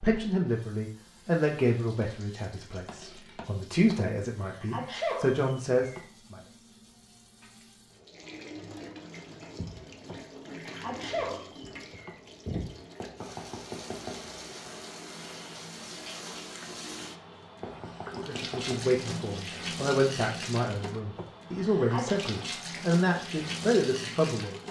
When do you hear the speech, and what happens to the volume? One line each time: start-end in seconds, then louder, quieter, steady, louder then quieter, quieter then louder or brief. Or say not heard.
0.0-6.4 quieter then louder
18.1-24.6 steady.